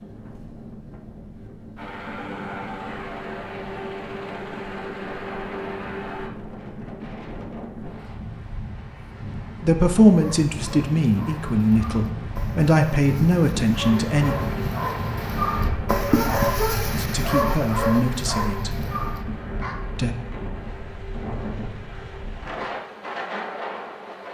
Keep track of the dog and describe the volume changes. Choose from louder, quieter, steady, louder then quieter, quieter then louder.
louder then quieter.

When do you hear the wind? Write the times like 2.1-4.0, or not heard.
0.0-24.2.